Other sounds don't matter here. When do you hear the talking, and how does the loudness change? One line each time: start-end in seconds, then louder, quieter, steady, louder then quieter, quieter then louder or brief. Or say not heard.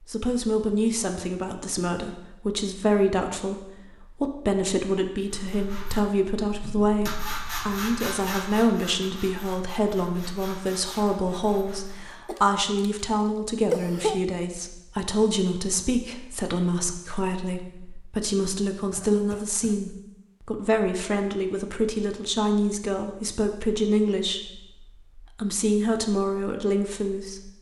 0.0-27.5 steady.